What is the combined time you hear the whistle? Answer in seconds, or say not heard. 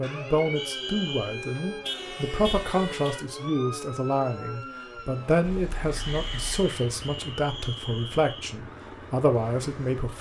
3 s.